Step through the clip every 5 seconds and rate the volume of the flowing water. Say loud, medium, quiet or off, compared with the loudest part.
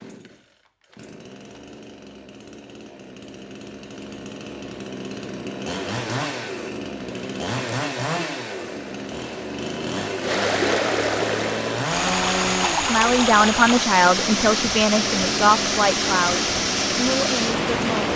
off, quiet, loud, loud.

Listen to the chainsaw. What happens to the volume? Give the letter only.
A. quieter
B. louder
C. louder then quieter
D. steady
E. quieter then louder
B.